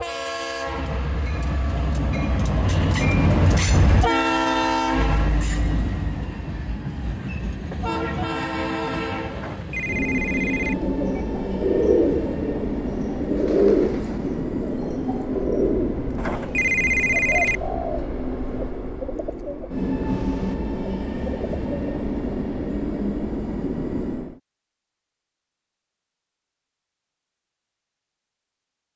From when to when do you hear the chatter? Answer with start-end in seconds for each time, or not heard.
not heard.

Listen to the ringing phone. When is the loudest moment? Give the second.
17 s.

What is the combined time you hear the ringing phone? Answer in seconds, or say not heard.
3 s.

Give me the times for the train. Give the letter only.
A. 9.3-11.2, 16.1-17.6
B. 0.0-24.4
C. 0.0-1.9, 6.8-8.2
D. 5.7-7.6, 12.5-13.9
B.